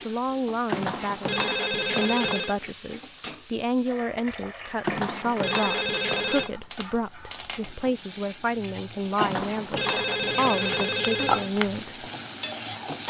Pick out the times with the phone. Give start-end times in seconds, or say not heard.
0.7-2.5, 4.8-6.5, 9.2-11.5.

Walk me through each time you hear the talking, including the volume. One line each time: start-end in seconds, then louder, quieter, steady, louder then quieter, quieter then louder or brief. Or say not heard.
0.1-12.1 steady.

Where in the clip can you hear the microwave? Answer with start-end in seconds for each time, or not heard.
not heard.